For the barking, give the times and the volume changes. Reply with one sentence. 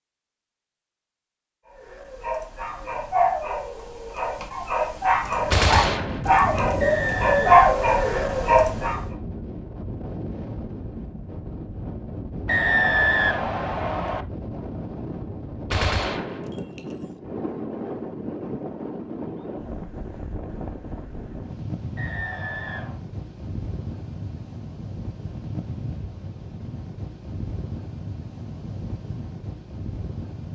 The barking can be heard from 1.7 to 9.0 s, getting quieter then louder.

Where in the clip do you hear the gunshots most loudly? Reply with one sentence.
The loudest moment of the gunshots is at 6 seconds.